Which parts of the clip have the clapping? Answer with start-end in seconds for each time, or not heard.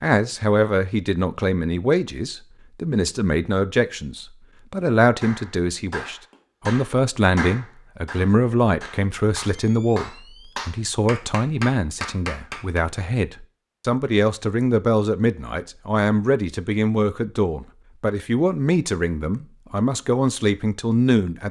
5.2-12.8.